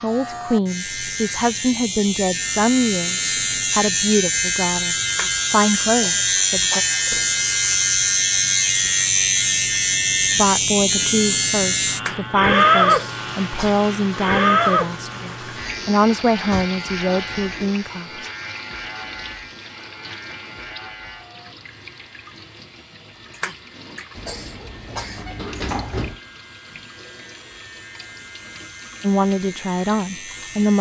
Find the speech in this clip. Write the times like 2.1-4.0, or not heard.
0.0-6.8, 10.3-18.2, 29.0-30.7.